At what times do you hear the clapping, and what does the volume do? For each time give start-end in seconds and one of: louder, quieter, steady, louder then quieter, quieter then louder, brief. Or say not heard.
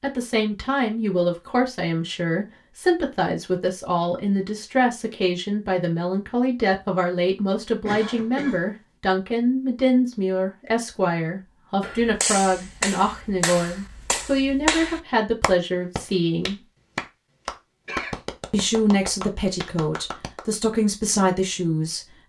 11.8-20.6 quieter.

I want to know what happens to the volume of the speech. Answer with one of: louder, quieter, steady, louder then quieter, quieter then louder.
steady.